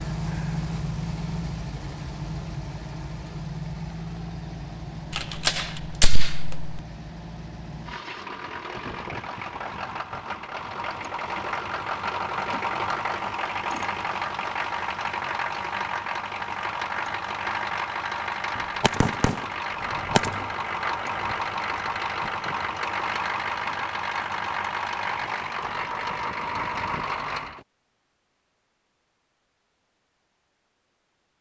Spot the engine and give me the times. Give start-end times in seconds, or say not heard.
0.0-27.6.